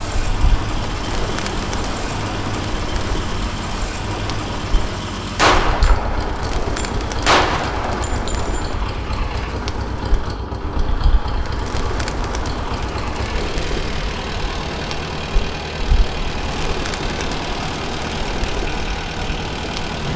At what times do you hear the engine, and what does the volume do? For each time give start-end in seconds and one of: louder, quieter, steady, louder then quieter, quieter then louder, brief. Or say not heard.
0.0-20.1 steady.